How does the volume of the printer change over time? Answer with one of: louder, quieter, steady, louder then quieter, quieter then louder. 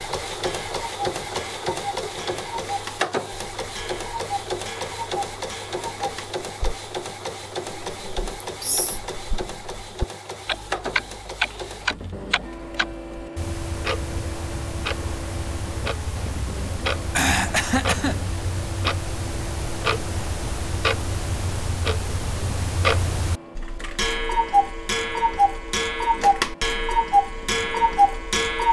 quieter.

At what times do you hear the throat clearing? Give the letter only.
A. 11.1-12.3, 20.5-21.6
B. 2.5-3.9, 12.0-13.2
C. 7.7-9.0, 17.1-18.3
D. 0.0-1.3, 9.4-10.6
C.